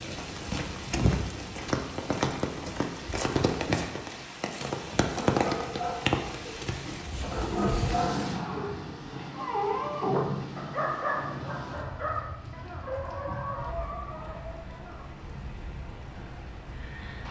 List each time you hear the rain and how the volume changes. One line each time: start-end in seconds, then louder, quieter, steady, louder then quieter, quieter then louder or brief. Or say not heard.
0.0-17.2 quieter.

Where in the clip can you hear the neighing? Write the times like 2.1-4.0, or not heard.
not heard.